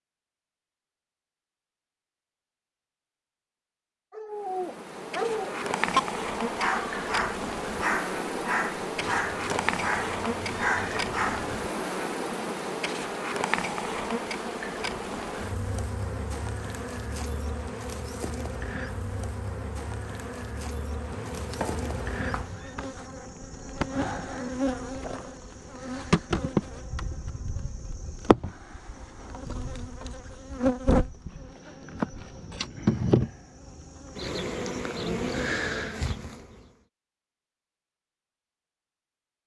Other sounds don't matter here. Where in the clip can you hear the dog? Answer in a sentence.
You can hear the dog from 4.1 to 11.6 s.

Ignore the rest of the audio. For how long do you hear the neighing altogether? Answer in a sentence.
You can hear the neighing for 4 seconds altogether.